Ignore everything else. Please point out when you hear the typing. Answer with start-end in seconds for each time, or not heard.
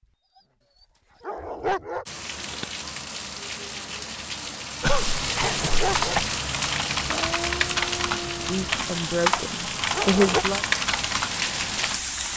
6.0-12.3.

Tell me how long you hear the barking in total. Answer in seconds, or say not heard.
2 s.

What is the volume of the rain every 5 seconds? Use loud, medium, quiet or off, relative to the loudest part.
medium, loud, loud.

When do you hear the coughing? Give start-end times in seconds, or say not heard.
4.8-6.3.